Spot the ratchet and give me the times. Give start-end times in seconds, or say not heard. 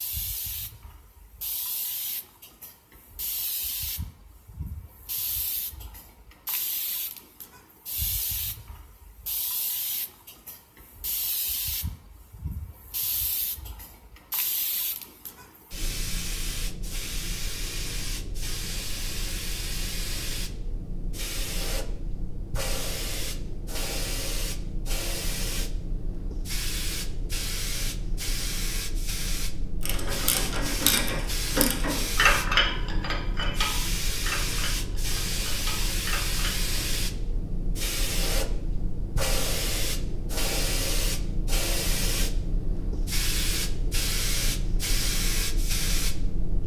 29.8-36.7.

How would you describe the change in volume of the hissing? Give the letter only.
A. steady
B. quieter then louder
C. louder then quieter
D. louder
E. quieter
D.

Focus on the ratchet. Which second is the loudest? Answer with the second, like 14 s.
32 s.